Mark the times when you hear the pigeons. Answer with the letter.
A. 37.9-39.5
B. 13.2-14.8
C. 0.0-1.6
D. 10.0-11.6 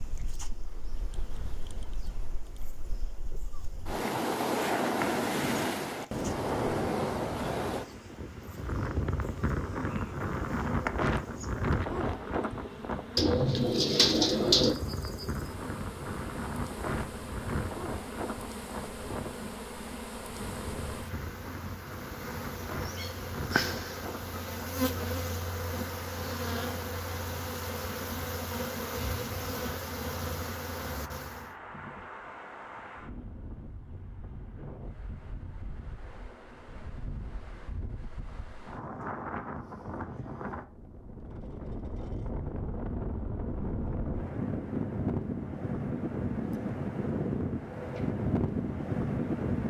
B.